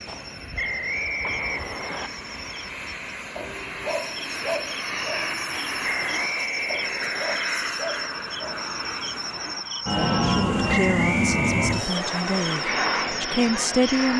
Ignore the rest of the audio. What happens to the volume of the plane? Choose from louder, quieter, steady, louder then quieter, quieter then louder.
louder.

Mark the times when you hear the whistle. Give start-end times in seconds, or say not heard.
0.6-2.1, 5.8-7.3, 10.7-12.2.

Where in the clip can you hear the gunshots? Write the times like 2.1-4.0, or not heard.
0.1-0.5, 1.2-2.1.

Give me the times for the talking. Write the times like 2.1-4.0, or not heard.
10.2-14.1.